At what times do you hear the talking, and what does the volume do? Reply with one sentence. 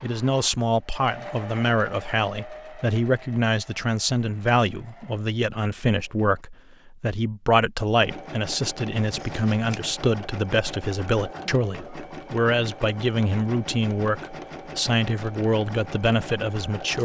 The talking can be heard from 0.0 to 16.9 s, at a steady volume.